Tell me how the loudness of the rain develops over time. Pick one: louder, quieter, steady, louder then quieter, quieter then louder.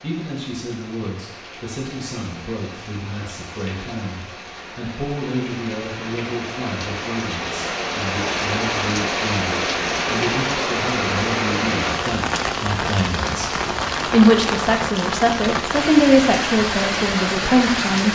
louder.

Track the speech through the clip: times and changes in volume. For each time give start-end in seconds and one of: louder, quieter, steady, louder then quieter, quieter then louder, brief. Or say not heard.
0.0-18.1 louder.